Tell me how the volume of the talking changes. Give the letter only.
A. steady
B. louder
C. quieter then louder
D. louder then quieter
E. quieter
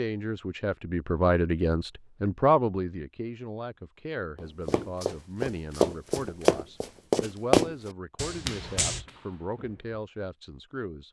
E.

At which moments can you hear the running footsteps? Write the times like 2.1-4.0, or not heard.
4.7-10.1.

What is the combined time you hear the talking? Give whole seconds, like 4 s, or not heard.
11 s.